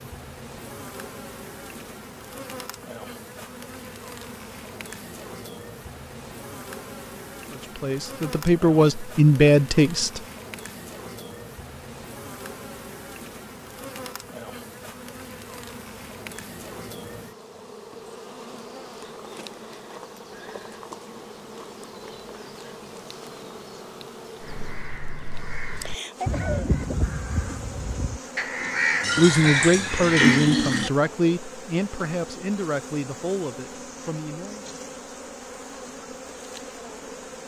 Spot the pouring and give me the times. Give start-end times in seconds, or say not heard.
29.0-30.9.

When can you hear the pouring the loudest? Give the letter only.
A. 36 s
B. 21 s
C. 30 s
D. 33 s
C.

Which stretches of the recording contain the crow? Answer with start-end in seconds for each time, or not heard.
24.4-30.6.